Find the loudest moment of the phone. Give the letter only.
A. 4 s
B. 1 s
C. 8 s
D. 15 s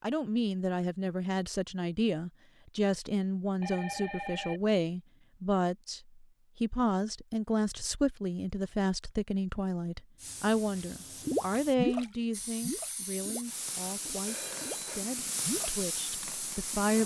A.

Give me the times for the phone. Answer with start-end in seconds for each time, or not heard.
3.6-4.7, 14.2-15.1.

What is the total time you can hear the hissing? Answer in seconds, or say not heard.
7 s.